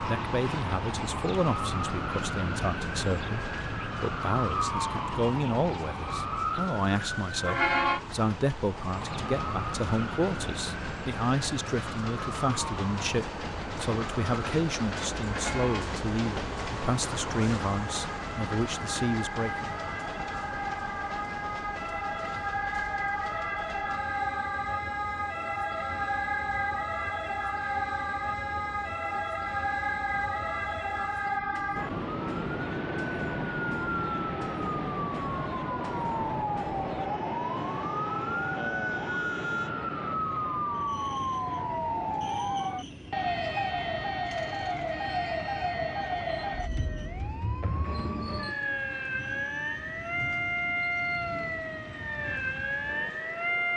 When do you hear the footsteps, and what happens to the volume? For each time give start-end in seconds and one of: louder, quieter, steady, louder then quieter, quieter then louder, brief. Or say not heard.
not heard.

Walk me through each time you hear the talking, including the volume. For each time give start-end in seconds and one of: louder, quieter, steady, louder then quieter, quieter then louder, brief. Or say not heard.
0.0-19.7 steady.